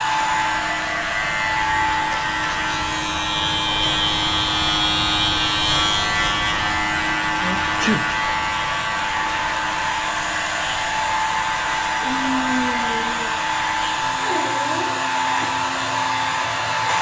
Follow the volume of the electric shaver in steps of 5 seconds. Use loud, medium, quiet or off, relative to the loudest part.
loud, loud, medium, medium.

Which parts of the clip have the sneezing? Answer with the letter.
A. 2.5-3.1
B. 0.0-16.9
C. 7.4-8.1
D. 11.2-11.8
C.